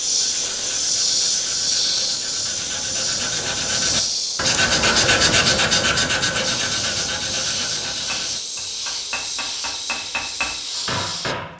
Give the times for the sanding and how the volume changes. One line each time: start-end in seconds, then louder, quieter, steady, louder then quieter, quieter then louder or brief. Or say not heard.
0.0-8.8 louder then quieter.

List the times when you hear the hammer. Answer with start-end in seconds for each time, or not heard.
7.9-11.5.